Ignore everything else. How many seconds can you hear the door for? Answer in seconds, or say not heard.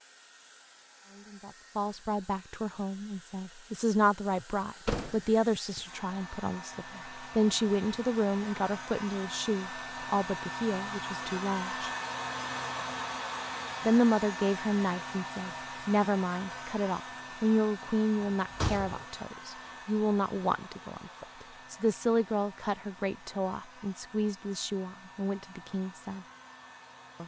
2 s.